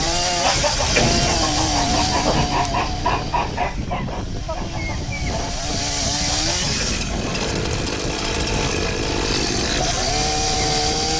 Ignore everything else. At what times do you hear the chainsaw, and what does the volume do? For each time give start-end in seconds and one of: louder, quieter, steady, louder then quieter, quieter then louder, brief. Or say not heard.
0.0-11.1 quieter then louder.